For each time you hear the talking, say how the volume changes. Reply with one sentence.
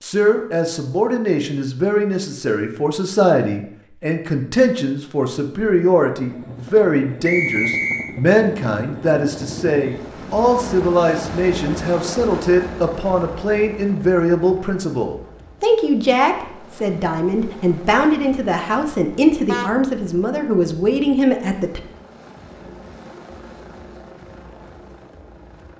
The talking can be heard from 0.0 to 21.8 s, at a steady volume.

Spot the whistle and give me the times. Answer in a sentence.
The whistle can be heard from 7.2 to 8.2 s.